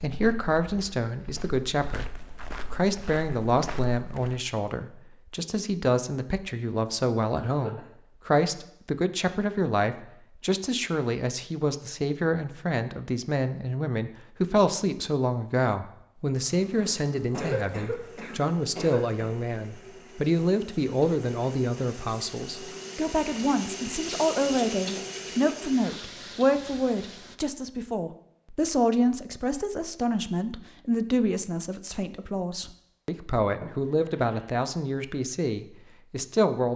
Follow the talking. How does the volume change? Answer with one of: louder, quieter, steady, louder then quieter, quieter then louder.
steady.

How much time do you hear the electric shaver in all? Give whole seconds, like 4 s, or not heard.
not heard.